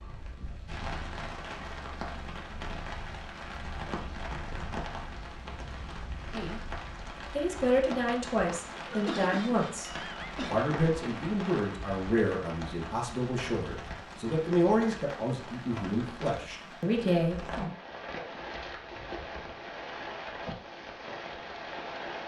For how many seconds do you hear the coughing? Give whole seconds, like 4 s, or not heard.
2 s.